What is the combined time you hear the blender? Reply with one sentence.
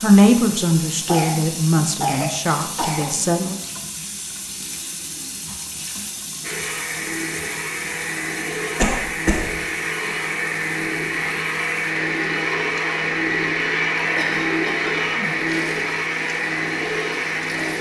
You can hear the blender for 11 seconds altogether.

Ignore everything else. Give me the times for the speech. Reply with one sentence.
The speech can be heard from 0.0 to 3.6 s.